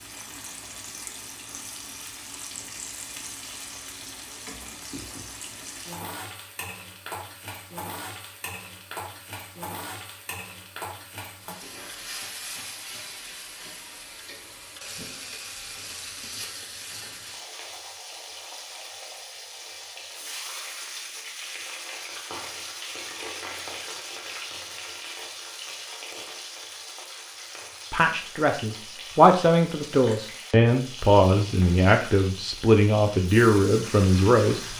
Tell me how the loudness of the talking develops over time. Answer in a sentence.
The loudness of the talking stays about the same.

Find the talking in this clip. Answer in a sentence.
You can hear the talking from 27.9 to 34.7 s.